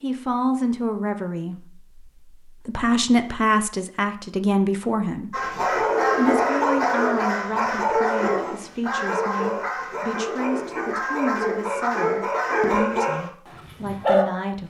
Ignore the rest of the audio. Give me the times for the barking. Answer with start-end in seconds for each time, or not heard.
5.3-14.2.